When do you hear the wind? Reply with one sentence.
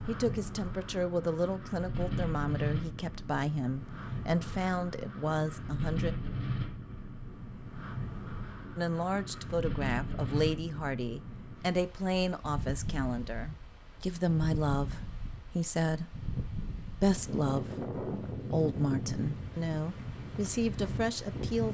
You can hear the wind from 0.0 to 21.6 s.